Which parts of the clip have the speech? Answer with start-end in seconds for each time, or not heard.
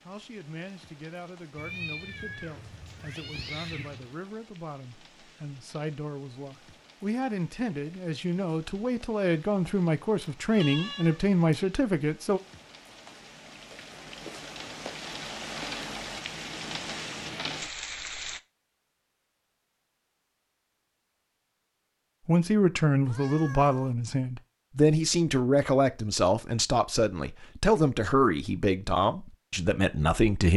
0.1-12.4, 22.2-30.5.